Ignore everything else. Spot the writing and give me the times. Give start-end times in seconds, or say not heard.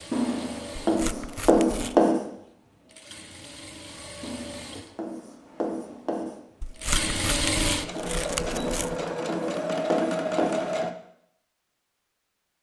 0.1-2.2, 4.2-6.4, 8.5-10.7.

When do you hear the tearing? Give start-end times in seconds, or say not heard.
0.8-2.0, 6.6-8.9.